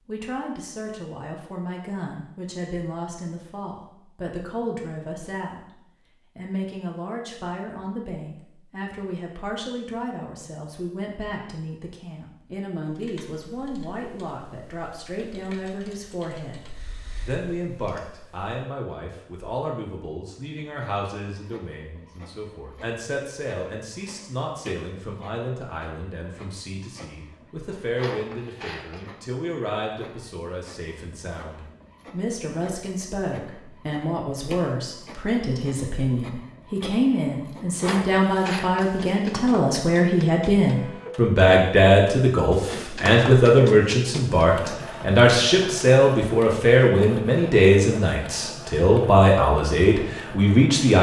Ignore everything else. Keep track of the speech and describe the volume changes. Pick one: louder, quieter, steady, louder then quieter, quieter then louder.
louder.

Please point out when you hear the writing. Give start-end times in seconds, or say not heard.
not heard.